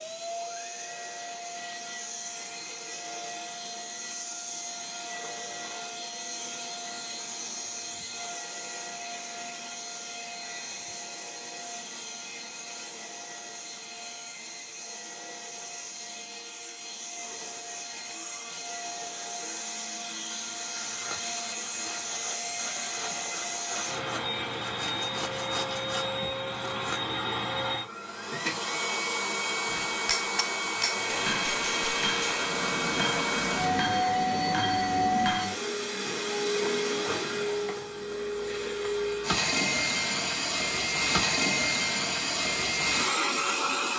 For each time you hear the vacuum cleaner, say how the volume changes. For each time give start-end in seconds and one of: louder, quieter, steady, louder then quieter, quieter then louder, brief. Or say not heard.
0.0-43.9 louder.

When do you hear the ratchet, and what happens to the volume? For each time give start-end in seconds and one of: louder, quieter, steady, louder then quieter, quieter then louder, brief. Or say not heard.
not heard.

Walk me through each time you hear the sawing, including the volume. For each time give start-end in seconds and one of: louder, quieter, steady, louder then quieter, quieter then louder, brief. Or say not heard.
20.9-27.0 louder.